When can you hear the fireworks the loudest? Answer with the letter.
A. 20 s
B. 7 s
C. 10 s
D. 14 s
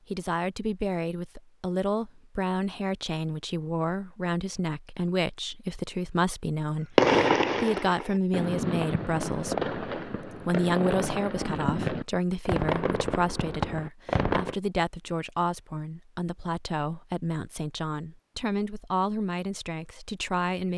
B.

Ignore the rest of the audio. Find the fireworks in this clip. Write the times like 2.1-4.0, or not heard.
7.0-14.6.